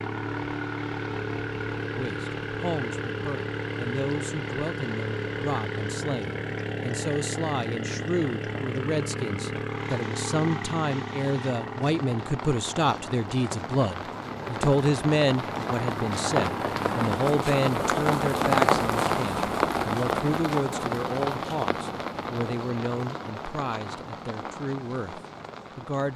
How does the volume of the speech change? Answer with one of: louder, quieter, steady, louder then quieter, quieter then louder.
louder then quieter.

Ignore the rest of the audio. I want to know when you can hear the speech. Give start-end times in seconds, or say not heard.
1.9-26.1.